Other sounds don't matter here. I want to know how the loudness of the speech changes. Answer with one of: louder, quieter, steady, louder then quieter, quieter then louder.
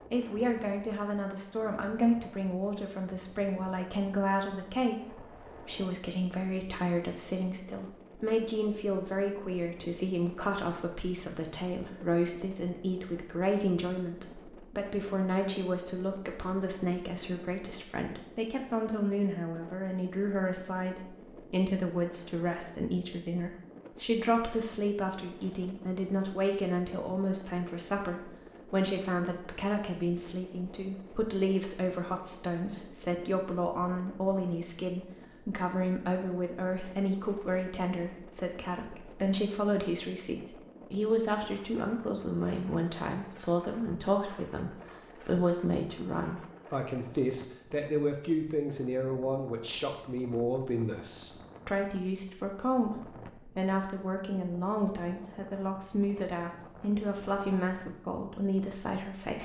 steady.